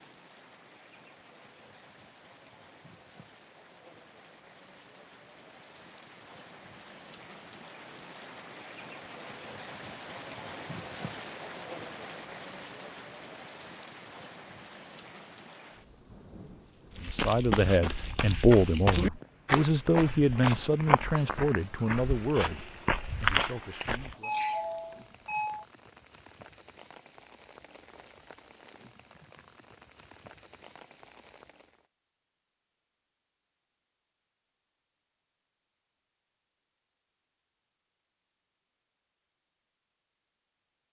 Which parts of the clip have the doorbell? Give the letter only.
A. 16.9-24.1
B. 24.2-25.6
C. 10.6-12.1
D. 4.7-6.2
B.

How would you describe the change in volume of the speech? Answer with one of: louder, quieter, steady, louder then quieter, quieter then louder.
quieter.